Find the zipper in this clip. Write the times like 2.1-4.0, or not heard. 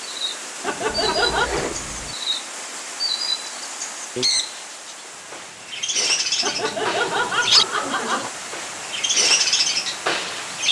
0.8-2.1.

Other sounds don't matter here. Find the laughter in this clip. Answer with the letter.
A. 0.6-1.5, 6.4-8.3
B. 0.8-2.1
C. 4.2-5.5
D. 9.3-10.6
A.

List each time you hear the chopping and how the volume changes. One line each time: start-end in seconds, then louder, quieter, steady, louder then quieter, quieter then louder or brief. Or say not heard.
not heard.